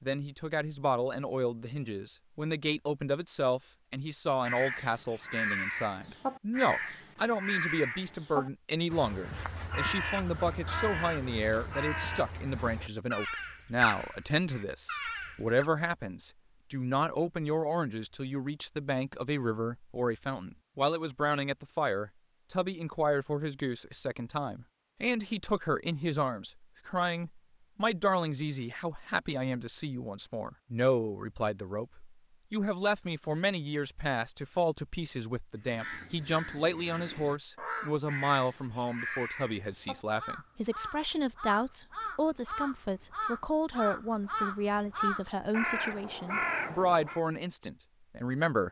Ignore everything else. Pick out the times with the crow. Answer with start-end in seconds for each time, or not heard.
4.4-15.7, 35.7-47.2.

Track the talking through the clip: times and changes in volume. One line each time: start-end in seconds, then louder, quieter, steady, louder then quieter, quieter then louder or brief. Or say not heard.
0.0-48.6 steady.